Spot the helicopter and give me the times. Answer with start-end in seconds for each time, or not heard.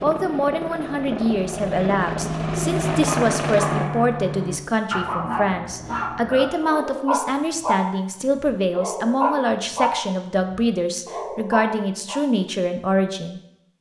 0.0-3.9.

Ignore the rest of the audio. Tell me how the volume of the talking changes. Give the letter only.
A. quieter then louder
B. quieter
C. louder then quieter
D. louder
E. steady
E.